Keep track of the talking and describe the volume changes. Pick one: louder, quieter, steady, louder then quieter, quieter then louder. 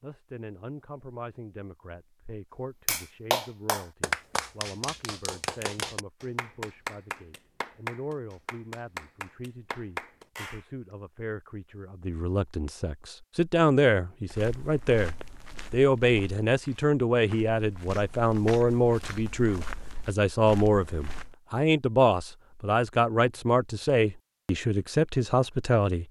louder.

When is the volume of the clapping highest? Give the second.
4 s.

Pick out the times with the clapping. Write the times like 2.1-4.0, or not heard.
2.9-10.7.